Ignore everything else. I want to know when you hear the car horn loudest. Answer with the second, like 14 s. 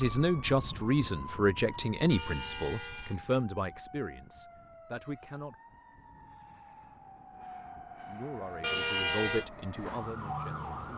9 s.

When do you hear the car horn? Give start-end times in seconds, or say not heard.
2.1-3.2, 8.6-9.4.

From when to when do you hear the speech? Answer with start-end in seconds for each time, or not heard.
0.0-5.5, 8.0-10.7.